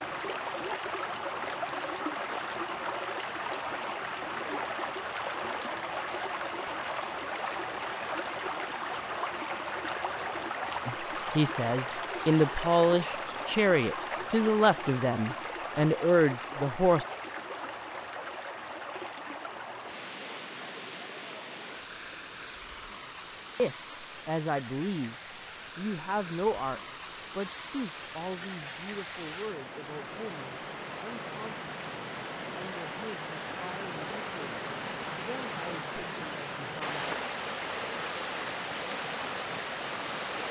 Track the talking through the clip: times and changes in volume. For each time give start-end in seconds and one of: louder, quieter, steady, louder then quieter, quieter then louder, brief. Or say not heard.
10.8-17.1 steady
23.6-25.1 brief
25.8-37.3 quieter.